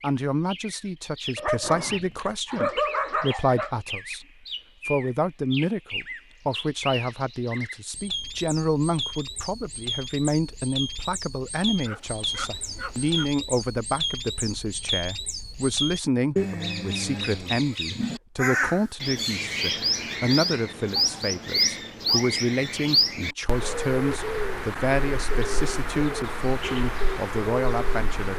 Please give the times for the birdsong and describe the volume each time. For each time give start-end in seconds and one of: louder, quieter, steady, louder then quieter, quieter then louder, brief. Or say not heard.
0.0-28.3 louder.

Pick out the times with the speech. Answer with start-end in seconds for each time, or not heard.
0.0-4.2, 4.8-28.3.